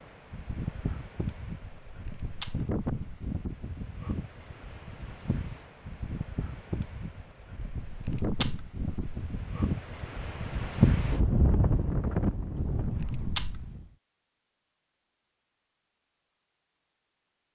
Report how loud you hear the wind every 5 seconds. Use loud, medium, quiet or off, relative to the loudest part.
medium, medium, loud, off.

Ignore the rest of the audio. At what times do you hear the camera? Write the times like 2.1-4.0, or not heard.
1.6-3.4, 7.6-9.4, 12.6-13.7.